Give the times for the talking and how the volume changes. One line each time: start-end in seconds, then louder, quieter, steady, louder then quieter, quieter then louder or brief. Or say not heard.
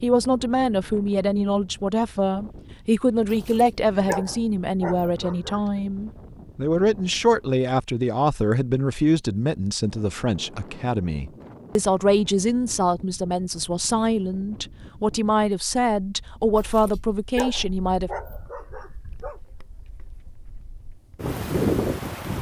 0.0-18.1 steady.